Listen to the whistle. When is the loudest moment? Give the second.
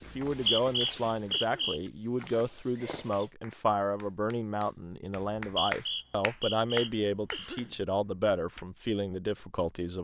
1 s.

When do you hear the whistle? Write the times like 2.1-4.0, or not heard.
0.1-1.8, 5.4-7.5.